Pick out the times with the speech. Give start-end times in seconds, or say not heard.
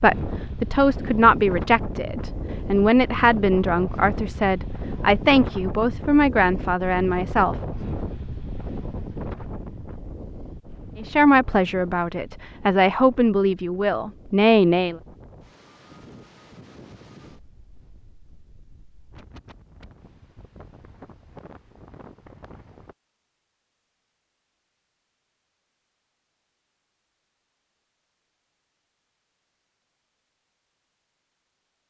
0.0-7.5, 10.9-15.0.